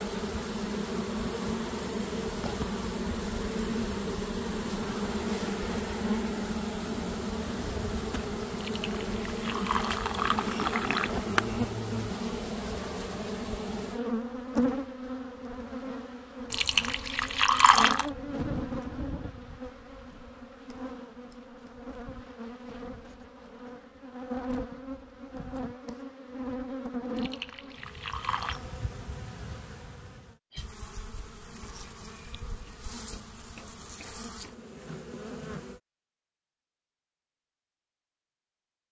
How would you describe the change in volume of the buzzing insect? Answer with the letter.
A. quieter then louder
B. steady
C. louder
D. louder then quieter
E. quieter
E.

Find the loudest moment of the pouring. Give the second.
18 s.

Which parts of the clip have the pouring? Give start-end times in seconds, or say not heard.
8.6-11.2, 16.5-18.1, 27.1-28.6.